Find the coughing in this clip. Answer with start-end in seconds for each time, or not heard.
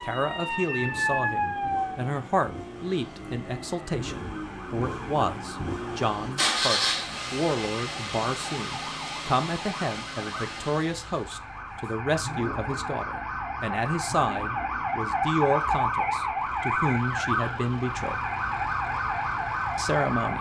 not heard.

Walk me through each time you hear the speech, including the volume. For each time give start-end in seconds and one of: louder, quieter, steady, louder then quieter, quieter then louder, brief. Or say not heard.
0.0-18.1 steady
19.8-20.3 brief.